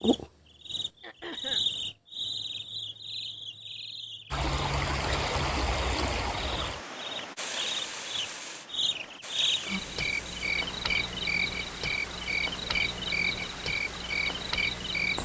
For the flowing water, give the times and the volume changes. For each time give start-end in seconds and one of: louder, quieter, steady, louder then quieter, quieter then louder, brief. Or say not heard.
4.3-15.1 quieter.